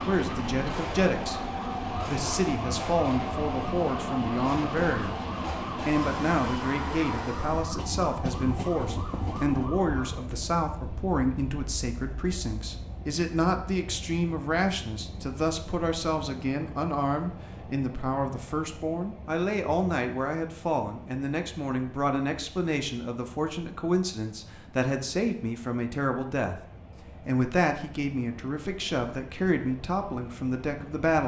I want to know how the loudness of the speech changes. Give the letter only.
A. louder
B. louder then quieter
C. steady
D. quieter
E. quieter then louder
C.